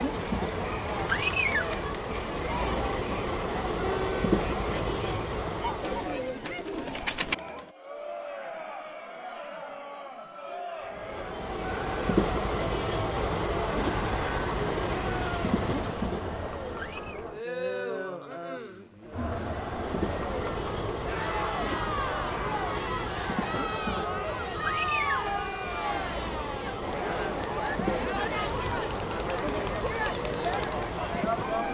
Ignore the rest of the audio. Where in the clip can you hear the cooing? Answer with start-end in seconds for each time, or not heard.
5.8-7.3.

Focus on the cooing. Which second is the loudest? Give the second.
7 s.